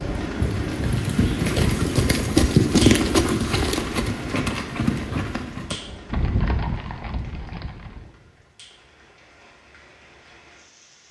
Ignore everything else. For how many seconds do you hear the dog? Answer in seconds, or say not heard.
not heard.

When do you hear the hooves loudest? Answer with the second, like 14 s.
3 s.